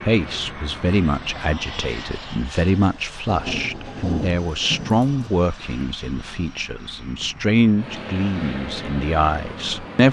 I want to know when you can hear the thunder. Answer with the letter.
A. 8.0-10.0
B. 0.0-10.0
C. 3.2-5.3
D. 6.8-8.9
C.